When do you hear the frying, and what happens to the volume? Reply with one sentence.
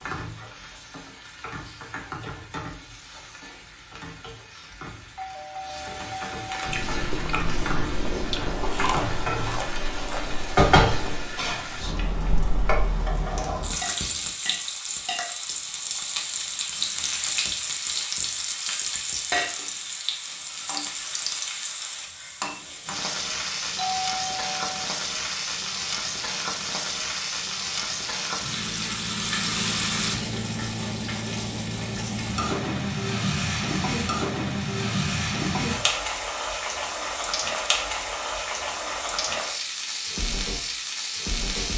The frying can be heard from 0.0 to 41.7 s, getting louder.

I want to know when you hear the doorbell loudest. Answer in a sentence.
The loudest moment of the doorbell is at 24 seconds.